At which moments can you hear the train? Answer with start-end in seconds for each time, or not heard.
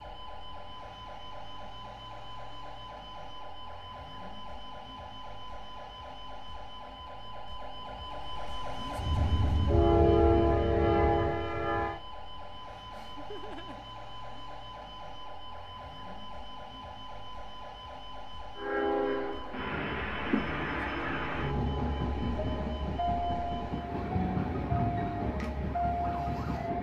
8.9-12.0, 18.6-26.7.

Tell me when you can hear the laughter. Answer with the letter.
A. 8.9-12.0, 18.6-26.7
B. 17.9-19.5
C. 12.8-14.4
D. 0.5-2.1
C.